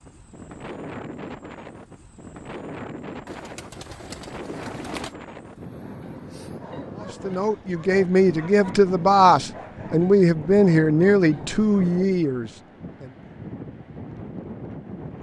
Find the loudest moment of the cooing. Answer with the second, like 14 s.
5 s.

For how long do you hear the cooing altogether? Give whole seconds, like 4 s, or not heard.
2 s.